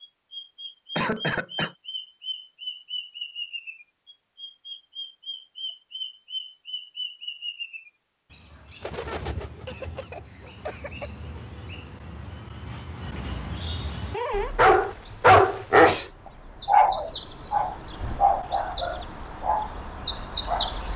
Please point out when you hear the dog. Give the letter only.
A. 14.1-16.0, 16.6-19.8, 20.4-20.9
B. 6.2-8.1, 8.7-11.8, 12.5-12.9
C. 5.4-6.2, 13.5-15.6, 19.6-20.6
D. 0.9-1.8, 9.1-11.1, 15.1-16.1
A.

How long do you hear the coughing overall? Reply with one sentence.
The coughing can be heard for 4 seconds in total.